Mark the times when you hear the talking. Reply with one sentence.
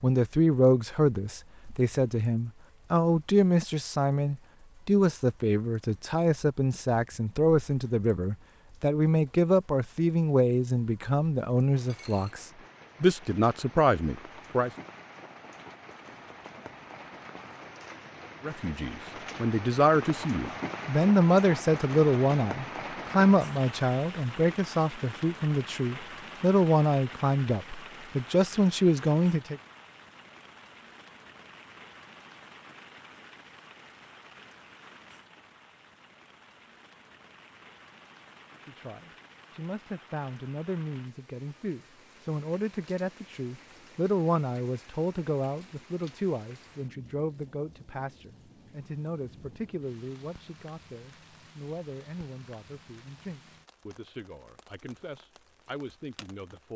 You can hear the talking from 0.0 to 14.7 s, from 18.4 to 29.6 s and from 38.6 to 56.7 s.